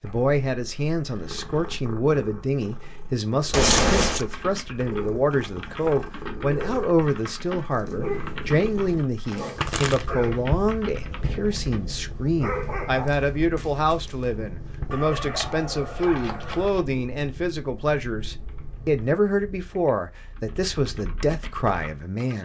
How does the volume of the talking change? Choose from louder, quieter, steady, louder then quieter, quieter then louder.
steady.